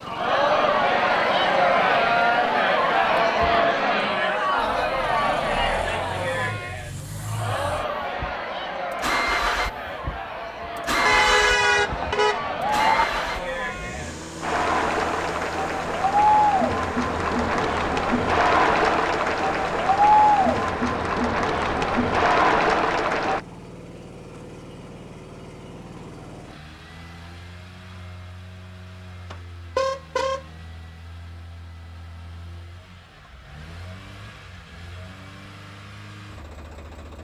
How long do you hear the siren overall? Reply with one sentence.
You can't hear the siren here.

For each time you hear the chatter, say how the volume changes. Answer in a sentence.
The chatter can be heard from 0.1 to 23.4 s, getting quieter then louder.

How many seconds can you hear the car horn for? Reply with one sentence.
You can hear the car horn for 3 seconds altogether.